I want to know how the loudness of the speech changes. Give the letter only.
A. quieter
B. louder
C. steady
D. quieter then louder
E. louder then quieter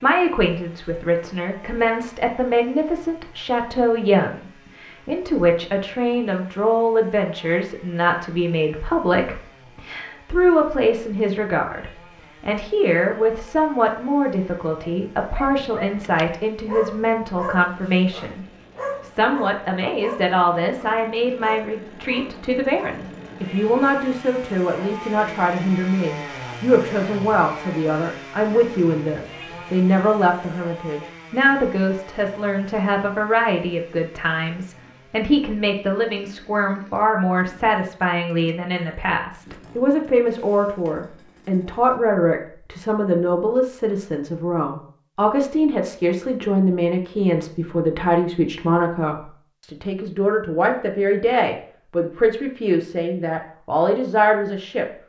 C.